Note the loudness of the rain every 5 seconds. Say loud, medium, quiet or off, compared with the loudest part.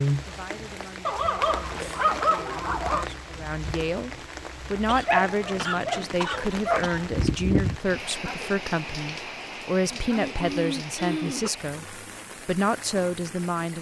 loud, loud, medium.